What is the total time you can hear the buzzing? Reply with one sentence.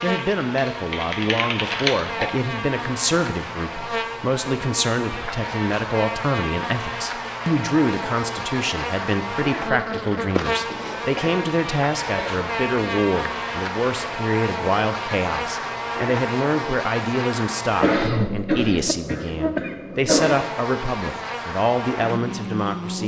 You can hear the buzzing for 23 seconds altogether.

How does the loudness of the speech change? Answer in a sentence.
The loudness of the speech stays about the same.